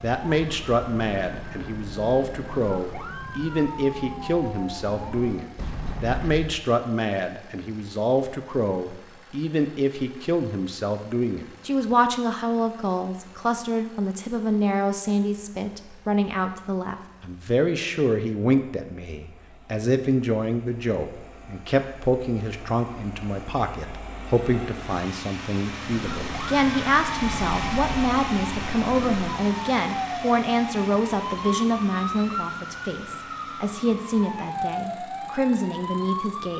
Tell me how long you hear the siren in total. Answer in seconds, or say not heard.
16 s.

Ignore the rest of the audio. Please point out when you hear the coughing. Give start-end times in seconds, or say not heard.
not heard.